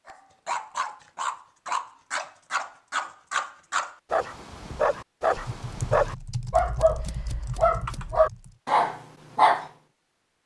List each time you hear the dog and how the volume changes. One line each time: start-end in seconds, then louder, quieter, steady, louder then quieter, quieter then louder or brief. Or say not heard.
0.1-9.7 louder.